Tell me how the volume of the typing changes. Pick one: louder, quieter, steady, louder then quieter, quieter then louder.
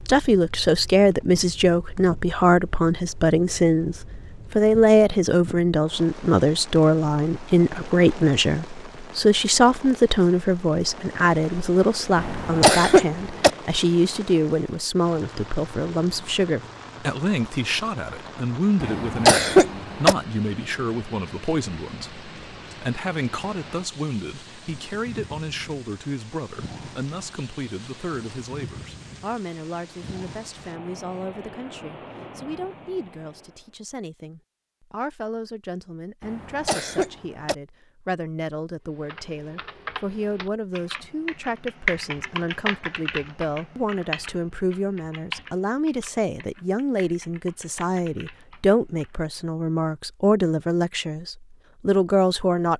louder then quieter.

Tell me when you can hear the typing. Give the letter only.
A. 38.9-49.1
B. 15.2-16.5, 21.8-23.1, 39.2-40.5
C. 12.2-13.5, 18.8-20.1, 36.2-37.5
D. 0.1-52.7
A.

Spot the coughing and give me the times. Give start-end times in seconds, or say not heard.
12.2-13.5, 18.8-20.1, 36.2-37.5.